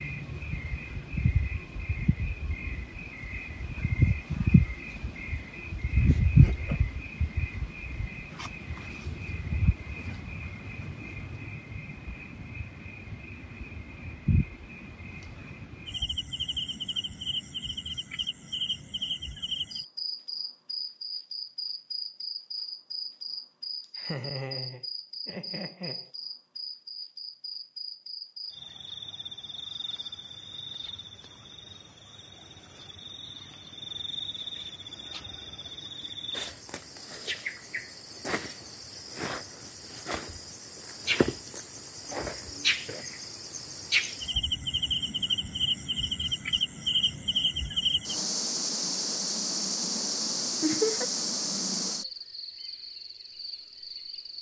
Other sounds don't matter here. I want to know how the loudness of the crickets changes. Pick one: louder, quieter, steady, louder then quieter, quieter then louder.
quieter then louder.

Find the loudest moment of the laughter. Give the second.
51 s.